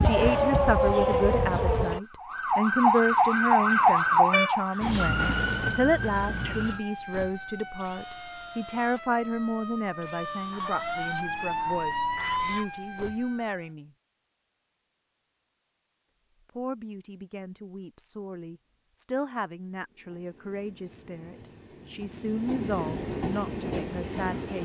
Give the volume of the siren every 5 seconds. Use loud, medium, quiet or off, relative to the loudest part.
loud, medium, medium, off, off.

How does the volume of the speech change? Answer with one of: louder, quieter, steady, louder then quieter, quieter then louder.
quieter.